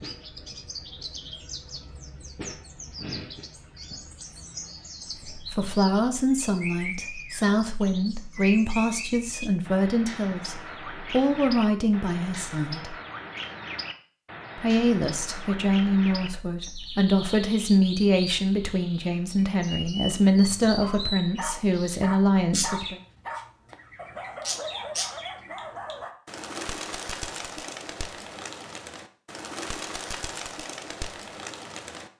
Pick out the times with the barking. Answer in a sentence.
The barking can be heard from 20.6 to 26.1 s.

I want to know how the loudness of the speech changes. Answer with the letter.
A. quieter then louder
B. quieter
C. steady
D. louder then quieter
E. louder
C.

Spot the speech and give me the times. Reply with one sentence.
You can hear the speech from 5.2 to 12.9 s and from 14.6 to 23.0 s.